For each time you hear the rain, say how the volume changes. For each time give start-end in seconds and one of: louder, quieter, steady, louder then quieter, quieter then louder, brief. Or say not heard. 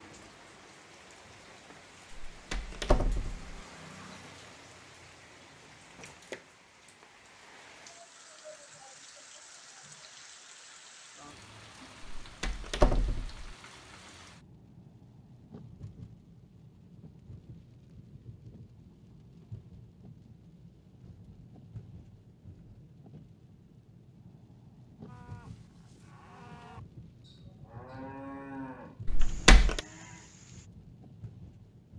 0.0-31.9 steady.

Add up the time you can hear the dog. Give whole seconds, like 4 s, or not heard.
not heard.